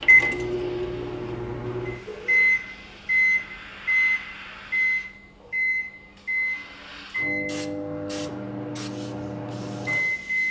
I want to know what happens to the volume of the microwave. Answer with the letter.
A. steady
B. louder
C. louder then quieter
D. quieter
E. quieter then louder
C.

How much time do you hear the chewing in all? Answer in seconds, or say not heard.
not heard.